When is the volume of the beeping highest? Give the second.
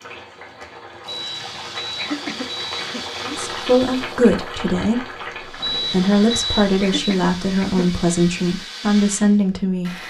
6 s.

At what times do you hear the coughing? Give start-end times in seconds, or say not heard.
1.9-3.0, 6.8-8.0.